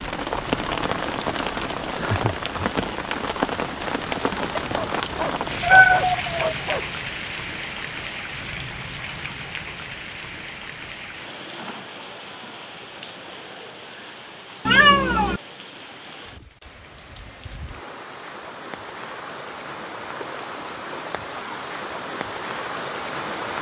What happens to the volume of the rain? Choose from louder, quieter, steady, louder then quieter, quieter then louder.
quieter then louder.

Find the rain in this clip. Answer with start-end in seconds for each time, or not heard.
0.0-23.5.